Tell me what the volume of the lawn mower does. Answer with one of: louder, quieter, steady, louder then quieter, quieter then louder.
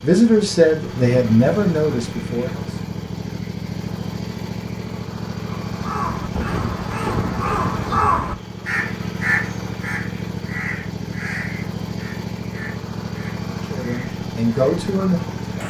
steady.